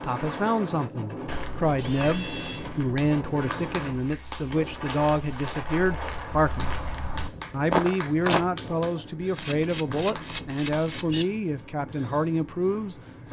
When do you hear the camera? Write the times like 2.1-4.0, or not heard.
1.8-2.6, 9.3-11.2.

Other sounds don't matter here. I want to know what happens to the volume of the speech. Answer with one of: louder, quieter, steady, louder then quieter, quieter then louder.
steady.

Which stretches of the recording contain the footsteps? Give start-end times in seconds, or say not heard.
1.2-8.4.